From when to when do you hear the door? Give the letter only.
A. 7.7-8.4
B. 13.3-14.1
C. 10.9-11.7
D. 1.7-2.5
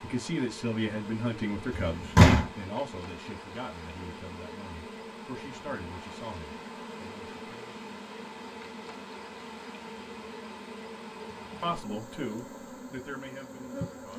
D.